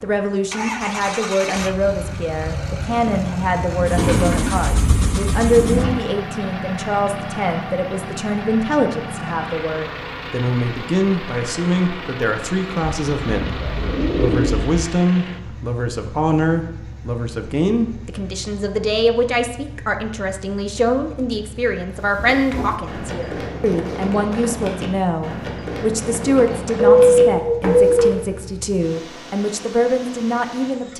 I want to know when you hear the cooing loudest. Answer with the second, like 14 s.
27 s.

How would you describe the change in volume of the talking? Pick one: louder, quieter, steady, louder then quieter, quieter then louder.
steady.